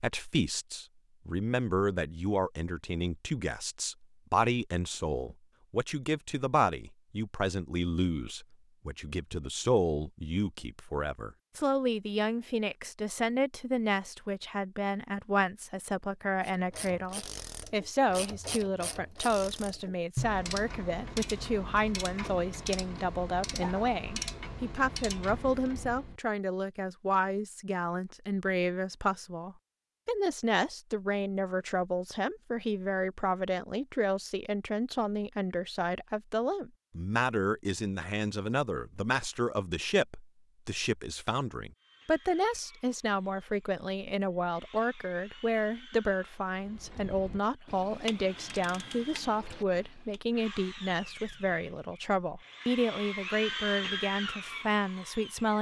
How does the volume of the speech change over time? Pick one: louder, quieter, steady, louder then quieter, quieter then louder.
steady.